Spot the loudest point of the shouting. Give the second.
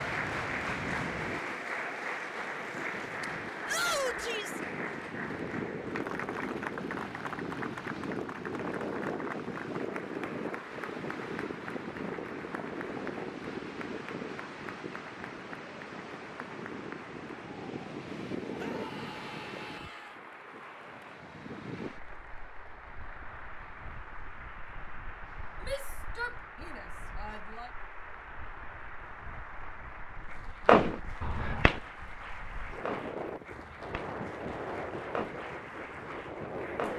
4 s.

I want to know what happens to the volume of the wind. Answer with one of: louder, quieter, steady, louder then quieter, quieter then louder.
quieter then louder.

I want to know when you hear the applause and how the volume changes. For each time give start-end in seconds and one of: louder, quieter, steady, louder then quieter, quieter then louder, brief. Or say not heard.
0.0-36.9 quieter.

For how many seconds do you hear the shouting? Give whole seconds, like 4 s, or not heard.
5 s.